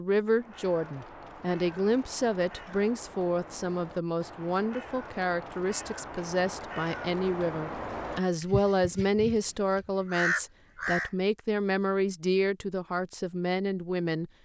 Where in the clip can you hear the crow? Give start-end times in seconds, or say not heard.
0.2-11.1.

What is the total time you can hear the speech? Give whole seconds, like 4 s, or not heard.
14 s.